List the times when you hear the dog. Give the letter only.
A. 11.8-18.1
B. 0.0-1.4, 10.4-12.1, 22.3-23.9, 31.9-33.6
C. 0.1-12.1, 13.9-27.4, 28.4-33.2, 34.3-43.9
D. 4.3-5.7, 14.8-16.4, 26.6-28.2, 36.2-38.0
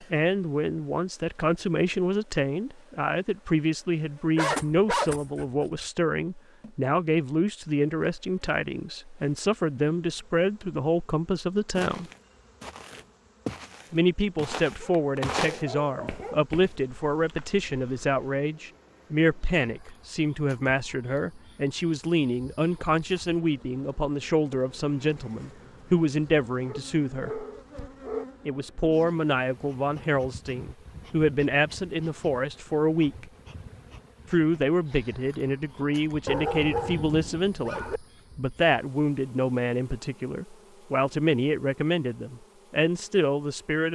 D.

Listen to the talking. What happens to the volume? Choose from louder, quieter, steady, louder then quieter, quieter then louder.
steady.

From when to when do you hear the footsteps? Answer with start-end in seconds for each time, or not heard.
11.8-18.1.